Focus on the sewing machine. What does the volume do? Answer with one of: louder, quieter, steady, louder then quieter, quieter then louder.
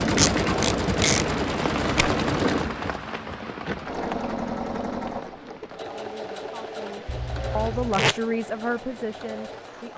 quieter.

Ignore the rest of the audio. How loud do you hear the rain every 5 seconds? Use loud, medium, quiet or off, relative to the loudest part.
loud, quiet.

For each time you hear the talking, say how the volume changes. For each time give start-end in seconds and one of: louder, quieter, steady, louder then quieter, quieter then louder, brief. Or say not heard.
5.8-9.9 louder then quieter.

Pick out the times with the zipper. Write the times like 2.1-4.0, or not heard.
0.2-0.8, 7.0-8.1.